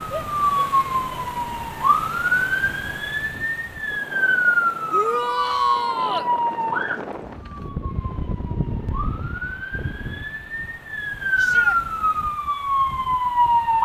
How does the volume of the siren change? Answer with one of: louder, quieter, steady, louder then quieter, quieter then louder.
quieter then louder.